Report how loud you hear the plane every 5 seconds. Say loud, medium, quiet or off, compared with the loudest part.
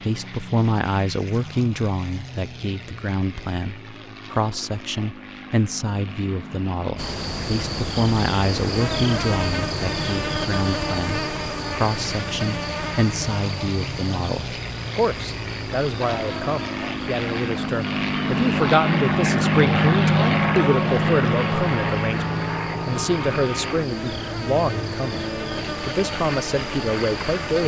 quiet, quiet, medium, loud, loud, medium.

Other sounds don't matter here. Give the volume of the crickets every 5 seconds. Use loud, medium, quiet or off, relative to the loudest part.
off, loud, loud, medium, medium, loud.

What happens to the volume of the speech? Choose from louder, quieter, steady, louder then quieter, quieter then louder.
steady.